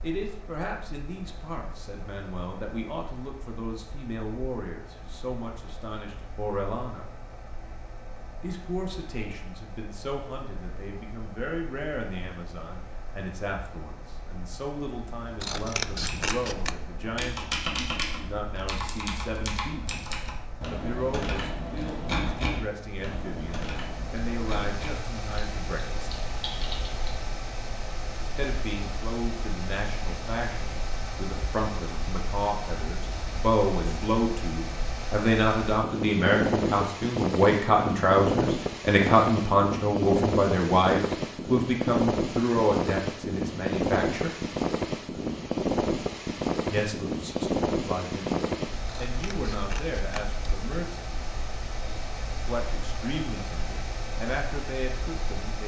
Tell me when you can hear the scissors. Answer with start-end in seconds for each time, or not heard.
15.4-16.8, 48.9-50.4.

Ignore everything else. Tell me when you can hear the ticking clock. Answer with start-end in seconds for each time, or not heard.
not heard.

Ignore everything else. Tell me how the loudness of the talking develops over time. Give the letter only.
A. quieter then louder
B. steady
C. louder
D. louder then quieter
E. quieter
D.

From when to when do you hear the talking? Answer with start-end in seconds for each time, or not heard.
0.0-7.0, 8.4-19.9, 20.7-26.1, 28.4-44.3, 46.7-51.0, 52.4-55.6.